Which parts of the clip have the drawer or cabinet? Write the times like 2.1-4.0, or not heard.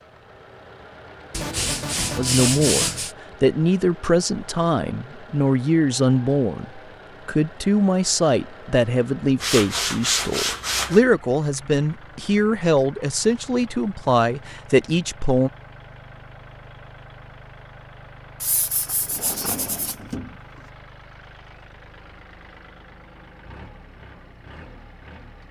18.8-20.7.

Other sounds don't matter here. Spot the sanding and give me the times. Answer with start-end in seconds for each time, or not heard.
1.3-3.1, 9.4-11.0, 18.4-19.9.